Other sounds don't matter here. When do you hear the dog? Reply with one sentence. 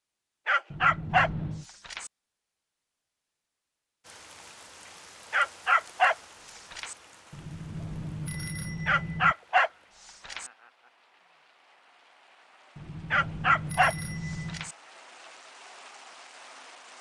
You can hear the dog from 0.5 to 2.1 s, from 5.3 to 7.0 s, from 8.8 to 10.5 s and from 13.1 to 14.8 s.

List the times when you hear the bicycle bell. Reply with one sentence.
The bicycle bell can be heard from 0.7 to 1.6 s, from 7.3 to 9.3 s and from 12.8 to 14.7 s.